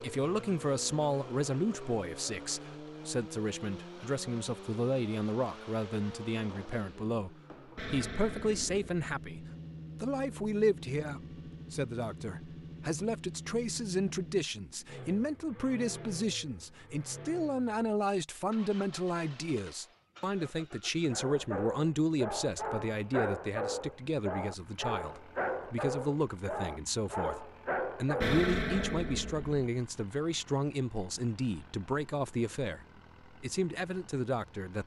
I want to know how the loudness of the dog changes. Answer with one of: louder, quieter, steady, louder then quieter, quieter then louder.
steady.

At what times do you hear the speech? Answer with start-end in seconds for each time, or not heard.
0.0-34.8.